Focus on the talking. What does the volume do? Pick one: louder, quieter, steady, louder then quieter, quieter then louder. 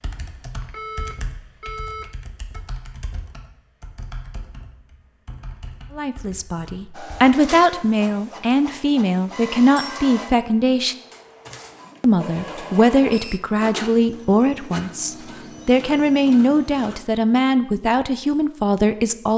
steady.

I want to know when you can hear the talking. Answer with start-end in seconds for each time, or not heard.
6.0-10.9, 12.0-19.3.